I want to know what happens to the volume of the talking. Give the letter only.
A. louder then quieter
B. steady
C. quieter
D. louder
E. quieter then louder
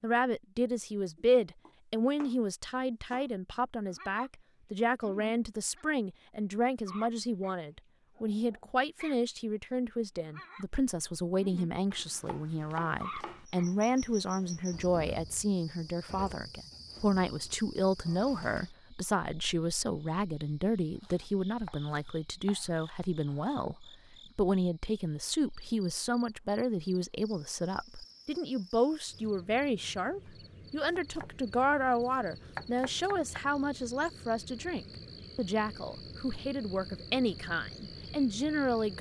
B.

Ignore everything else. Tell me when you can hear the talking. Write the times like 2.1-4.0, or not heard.
0.0-23.8, 24.4-38.9.